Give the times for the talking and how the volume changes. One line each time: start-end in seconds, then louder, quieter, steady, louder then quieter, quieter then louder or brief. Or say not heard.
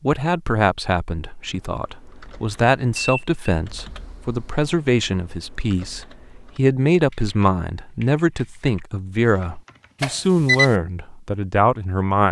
0.0-12.2 steady.